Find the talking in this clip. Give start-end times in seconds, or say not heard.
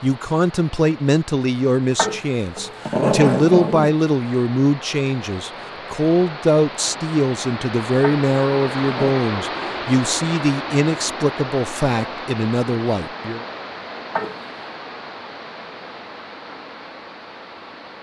0.0-13.4.